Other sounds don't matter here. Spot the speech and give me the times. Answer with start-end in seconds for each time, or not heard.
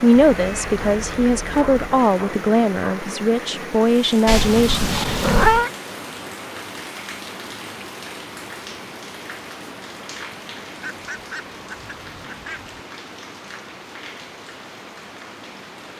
0.0-5.0.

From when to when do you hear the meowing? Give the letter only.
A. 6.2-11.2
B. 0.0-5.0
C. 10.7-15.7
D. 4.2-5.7
D.